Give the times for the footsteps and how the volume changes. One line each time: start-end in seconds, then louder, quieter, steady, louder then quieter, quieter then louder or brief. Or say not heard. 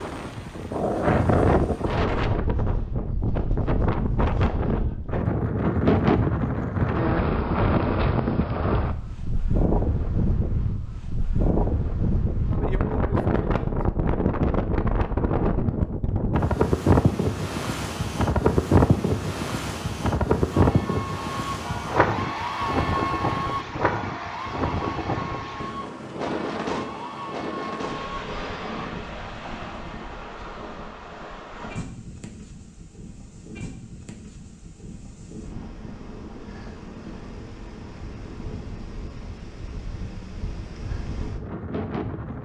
not heard.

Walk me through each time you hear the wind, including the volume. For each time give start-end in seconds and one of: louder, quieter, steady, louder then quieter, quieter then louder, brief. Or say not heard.
0.0-42.3 quieter.